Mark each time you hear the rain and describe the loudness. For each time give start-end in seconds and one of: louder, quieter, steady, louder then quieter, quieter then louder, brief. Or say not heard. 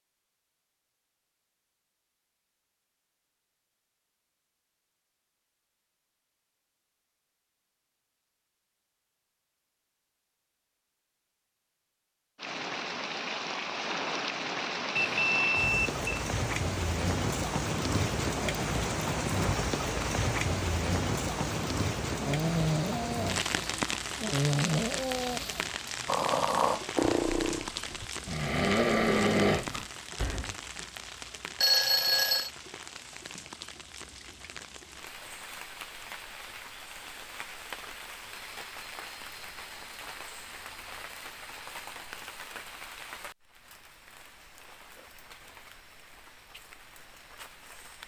12.3-48.0 quieter.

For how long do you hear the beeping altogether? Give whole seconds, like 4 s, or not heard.
2 s.